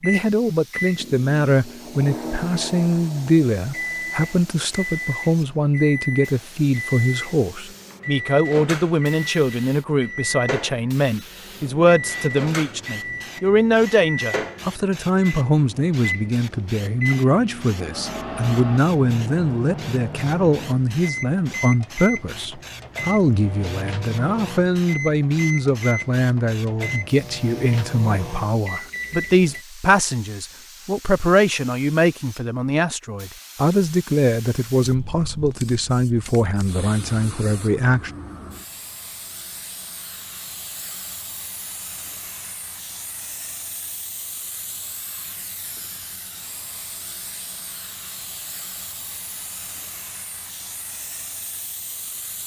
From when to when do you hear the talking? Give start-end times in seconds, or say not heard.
0.0-38.1.